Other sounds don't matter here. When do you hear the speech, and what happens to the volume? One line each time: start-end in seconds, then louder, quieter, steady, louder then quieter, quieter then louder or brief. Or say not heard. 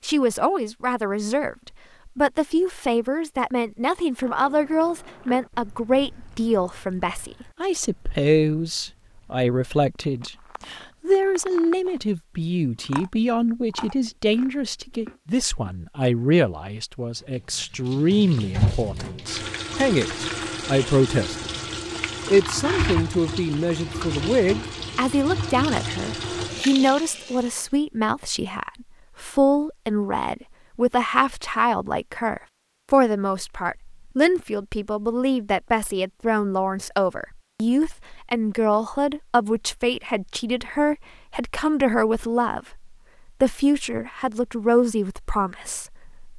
0.0-21.5 steady
22.2-46.3 steady.